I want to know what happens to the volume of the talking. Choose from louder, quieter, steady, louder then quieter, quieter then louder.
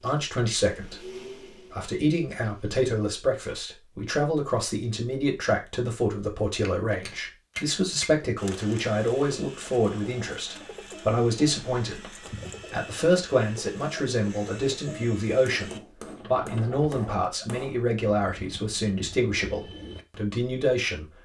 steady.